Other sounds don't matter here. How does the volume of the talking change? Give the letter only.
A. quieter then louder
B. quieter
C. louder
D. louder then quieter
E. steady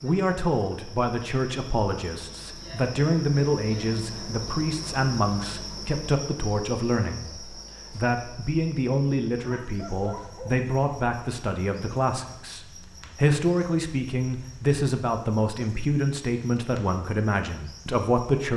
E.